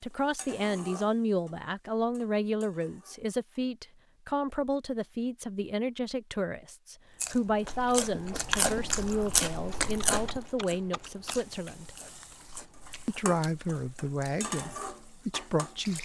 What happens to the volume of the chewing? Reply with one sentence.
The loudness of the chewing goes down.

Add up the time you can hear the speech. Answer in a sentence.
The speech can be heard for 15 seconds in total.